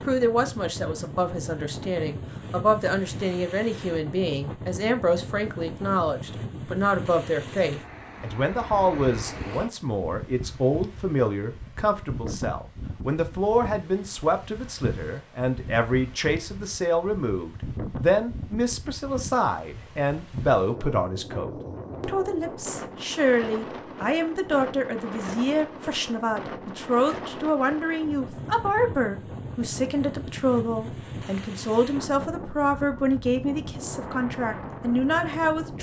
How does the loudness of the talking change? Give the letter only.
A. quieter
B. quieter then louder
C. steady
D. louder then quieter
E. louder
C.